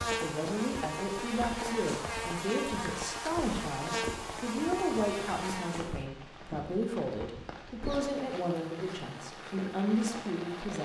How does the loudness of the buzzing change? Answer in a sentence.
The loudness of the buzzing stays about the same.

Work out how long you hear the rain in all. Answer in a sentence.
You can hear the rain for 11 seconds altogether.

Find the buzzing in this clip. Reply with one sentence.
You can hear the buzzing from 0.0 to 6.0 s.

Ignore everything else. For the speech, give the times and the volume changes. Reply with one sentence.
You can hear the speech from 0.2 to 10.8 s, at a steady volume.